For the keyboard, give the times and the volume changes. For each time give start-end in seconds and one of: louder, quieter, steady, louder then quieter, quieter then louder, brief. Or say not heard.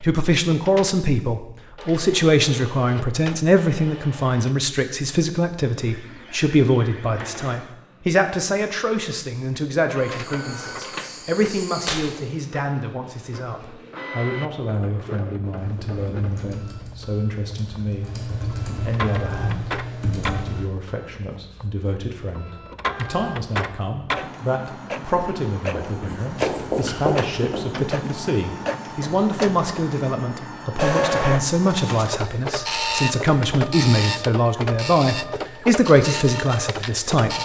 15.6-20.6 louder.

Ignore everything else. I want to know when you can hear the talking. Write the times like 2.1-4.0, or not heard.
0.0-37.4.